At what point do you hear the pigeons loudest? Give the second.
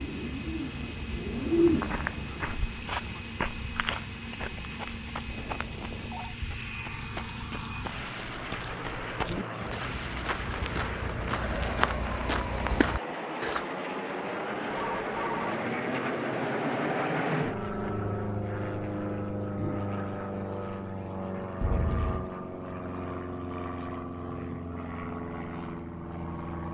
2 s.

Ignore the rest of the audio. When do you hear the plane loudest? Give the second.
17 s.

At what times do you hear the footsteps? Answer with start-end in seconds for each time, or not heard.
1.6-13.7.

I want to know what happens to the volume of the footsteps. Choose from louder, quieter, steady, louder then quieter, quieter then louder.
quieter then louder.